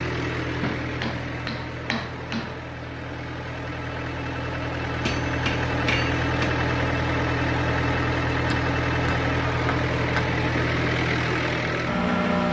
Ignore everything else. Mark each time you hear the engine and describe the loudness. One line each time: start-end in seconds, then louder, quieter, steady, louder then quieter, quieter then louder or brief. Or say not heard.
0.0-12.4 louder.